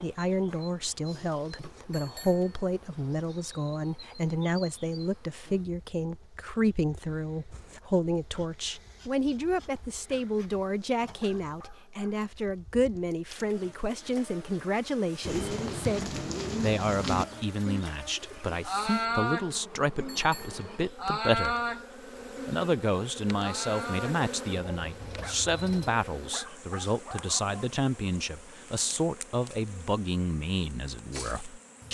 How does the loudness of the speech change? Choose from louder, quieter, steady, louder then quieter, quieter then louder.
steady.